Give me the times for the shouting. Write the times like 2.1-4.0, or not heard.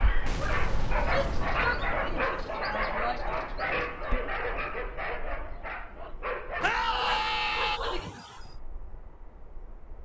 1.1-3.2, 6.6-7.8.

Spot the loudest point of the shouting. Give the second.
7 s.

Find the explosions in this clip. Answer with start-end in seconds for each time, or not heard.
0.2-2.2.